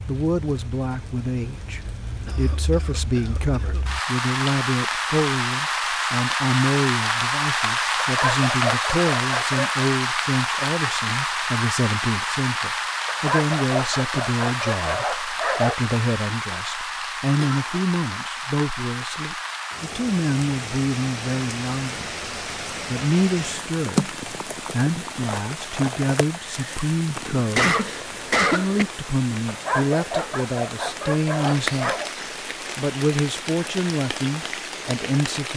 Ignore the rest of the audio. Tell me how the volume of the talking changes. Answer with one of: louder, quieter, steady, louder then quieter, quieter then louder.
steady.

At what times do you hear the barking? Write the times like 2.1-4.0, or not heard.
8.0-9.8, 13.1-15.8, 29.4-32.1.